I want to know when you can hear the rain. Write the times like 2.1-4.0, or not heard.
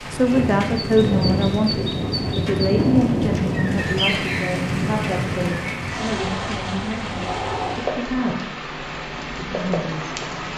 0.0-10.5.